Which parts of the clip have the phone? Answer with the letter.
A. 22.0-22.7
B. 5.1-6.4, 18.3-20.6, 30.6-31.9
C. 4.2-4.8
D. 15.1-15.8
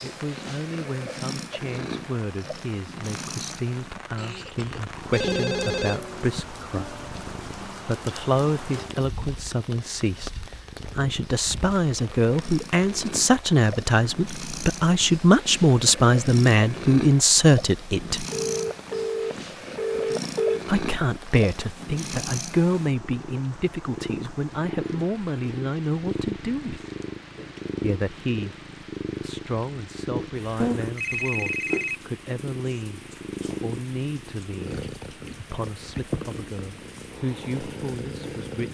B.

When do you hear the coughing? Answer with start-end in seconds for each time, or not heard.
4.2-4.8.